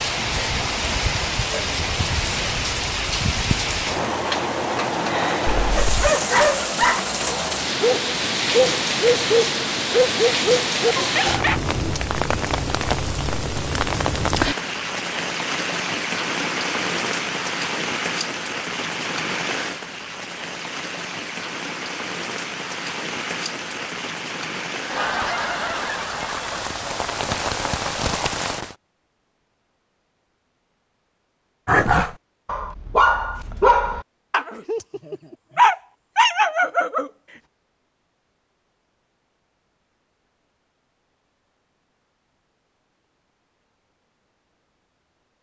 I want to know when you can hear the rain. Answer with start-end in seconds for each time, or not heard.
0.0-28.8.